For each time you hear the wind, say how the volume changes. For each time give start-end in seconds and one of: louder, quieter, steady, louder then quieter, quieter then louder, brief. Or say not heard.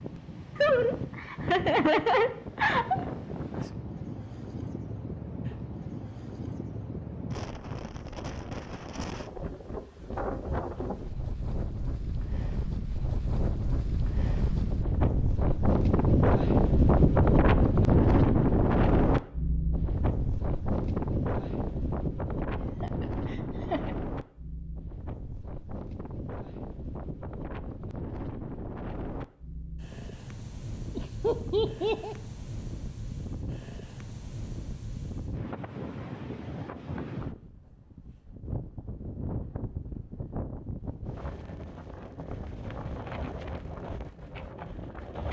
0.0-45.2 louder then quieter.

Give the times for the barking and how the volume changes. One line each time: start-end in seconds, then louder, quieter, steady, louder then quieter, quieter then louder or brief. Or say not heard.
not heard.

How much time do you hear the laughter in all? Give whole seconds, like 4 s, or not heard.
5 s.